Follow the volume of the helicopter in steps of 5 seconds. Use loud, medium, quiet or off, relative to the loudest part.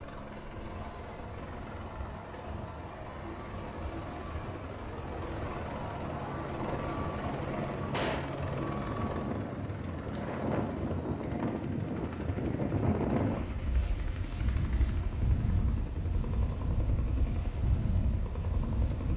medium, loud, medium, medium.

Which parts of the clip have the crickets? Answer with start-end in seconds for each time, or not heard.
not heard.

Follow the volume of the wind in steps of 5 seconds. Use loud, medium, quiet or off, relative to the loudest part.
quiet, medium, loud, loud.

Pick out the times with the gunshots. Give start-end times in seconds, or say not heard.
7.9-8.3.